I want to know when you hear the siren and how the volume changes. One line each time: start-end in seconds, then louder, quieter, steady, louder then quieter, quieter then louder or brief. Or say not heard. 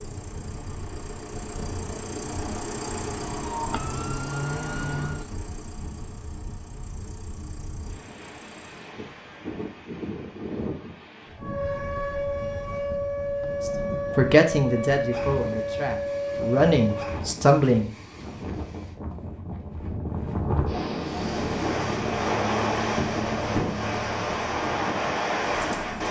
3.2-5.3 brief
11.3-17.3 steady.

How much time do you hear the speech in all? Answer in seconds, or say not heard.
4 s.